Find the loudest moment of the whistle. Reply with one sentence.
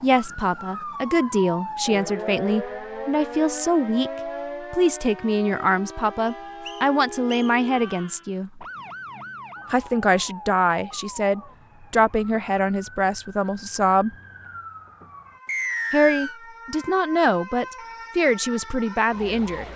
The volume of the whistle peaks at 16 seconds.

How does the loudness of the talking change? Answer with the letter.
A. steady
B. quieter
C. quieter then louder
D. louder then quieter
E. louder
A.